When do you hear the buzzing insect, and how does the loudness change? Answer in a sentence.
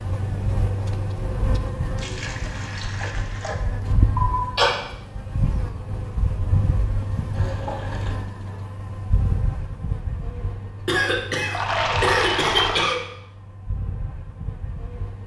The buzzing insect can be heard from 0.0 to 15.2 s, getting quieter.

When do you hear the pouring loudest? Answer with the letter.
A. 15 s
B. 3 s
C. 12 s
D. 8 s
C.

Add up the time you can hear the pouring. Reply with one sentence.
You can hear the pouring for 4 seconds altogether.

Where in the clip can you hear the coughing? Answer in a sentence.
You can hear the coughing from 4.2 to 4.8 s and from 10.8 to 12.9 s.